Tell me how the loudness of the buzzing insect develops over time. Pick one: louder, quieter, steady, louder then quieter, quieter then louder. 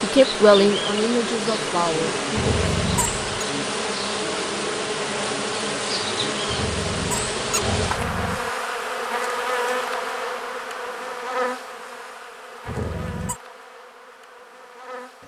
quieter.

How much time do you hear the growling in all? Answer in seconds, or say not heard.
4 s.